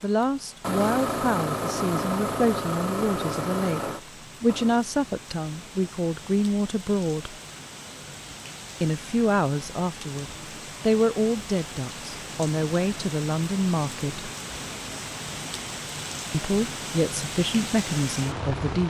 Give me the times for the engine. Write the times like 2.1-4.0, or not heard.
0.0-4.8.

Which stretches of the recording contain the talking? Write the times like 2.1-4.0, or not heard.
0.0-7.3, 8.8-14.3, 16.3-18.8.